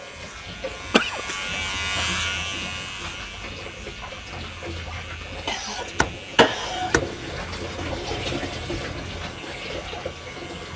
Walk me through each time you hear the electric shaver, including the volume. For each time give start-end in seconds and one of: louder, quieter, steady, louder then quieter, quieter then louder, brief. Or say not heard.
0.0-10.7 quieter.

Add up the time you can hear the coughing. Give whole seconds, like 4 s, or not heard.
2 s.